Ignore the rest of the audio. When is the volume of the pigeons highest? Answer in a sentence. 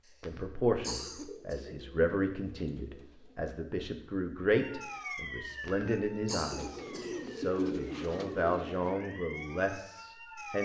The loudest moment of the pigeons is at 8 seconds.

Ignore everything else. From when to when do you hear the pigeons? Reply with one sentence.
The pigeons can be heard from 0.9 to 3.4 s and from 6.5 to 8.9 s.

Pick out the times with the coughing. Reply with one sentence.
You can hear the coughing from 0.1 to 1.6 s and from 5.7 to 7.3 s.